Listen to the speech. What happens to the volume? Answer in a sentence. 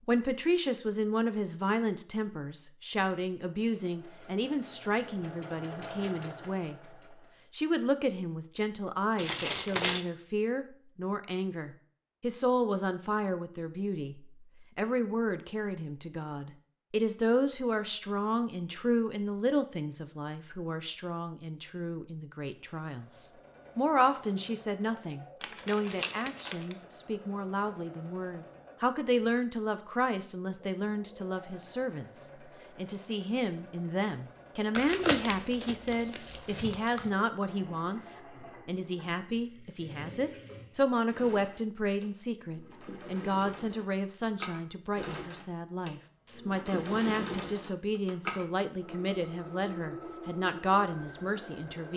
The loudness of the speech stays about the same.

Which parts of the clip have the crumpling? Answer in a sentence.
You can hear the crumpling from 9.2 to 10.1 s, from 25.4 to 26.8 s and from 34.8 to 37.1 s.